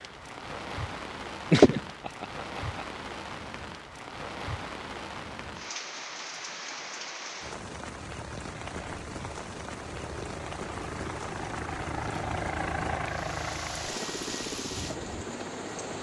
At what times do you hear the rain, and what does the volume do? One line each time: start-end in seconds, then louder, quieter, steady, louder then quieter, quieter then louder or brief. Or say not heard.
0.0-15.9 steady.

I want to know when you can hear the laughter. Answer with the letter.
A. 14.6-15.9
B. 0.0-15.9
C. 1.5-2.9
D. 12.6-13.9
C.